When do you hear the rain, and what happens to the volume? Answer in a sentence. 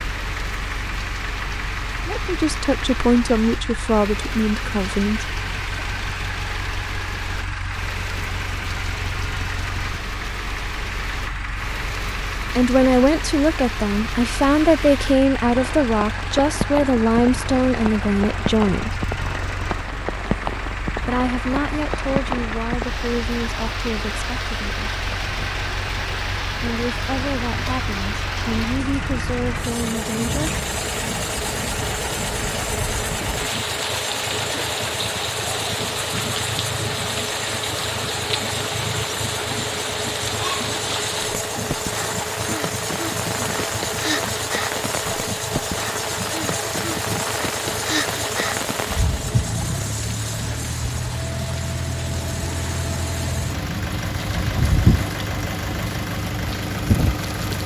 You can hear the rain from 0.0 to 57.6 s, getting louder.